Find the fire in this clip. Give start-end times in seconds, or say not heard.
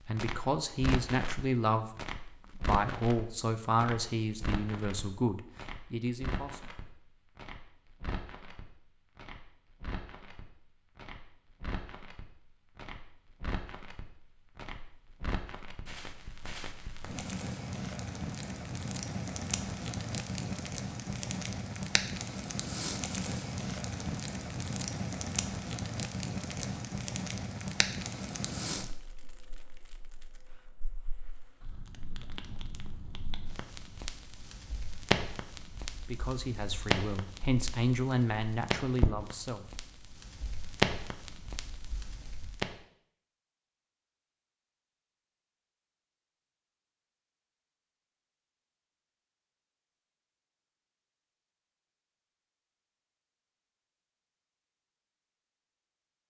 0.0-42.8.